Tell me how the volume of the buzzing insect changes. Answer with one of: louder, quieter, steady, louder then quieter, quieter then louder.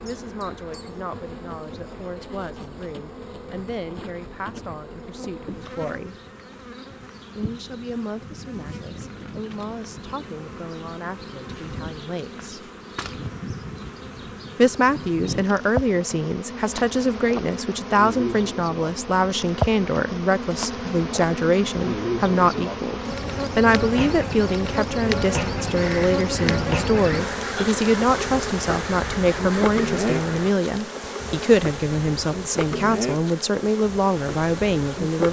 louder.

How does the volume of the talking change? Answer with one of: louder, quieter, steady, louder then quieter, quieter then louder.
louder.